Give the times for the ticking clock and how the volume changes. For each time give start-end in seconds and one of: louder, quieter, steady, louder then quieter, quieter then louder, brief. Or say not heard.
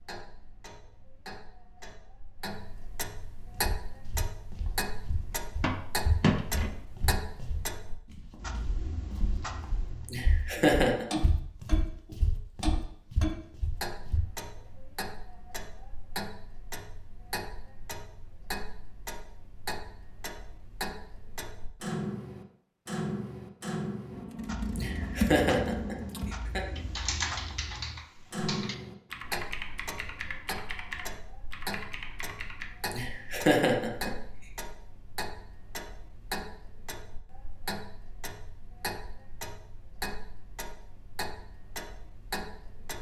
0.0-42.9 steady.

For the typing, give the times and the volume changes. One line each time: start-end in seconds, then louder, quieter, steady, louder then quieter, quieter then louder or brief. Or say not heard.
24.1-32.7 quieter.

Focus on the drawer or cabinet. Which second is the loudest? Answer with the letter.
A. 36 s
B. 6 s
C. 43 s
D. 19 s
B.